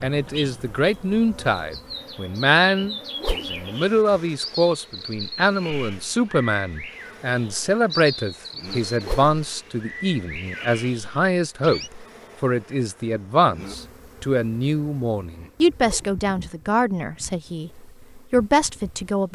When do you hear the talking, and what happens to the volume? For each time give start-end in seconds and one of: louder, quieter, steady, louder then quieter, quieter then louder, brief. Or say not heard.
0.0-19.2 steady.